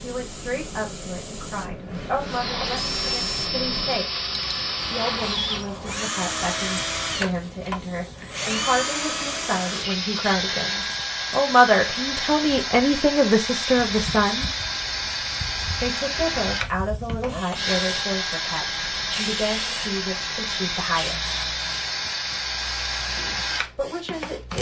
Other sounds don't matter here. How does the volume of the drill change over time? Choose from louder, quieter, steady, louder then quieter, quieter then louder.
steady.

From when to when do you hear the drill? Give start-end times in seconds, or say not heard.
2.2-24.5.